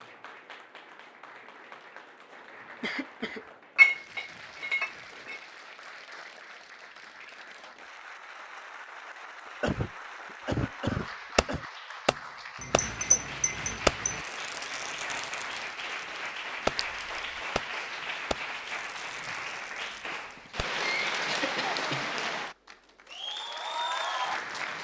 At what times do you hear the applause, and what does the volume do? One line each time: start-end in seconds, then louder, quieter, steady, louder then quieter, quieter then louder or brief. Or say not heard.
0.0-24.7 louder.